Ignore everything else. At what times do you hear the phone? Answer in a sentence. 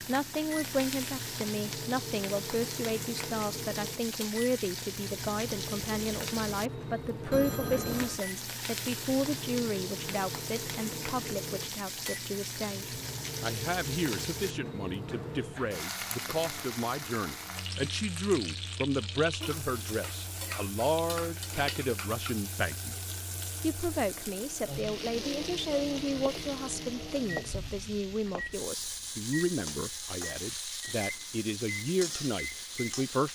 You can hear the phone from 7.3 to 8.2 s.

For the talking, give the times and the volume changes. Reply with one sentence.
The talking can be heard from 0.0 to 33.3 s, at a steady volume.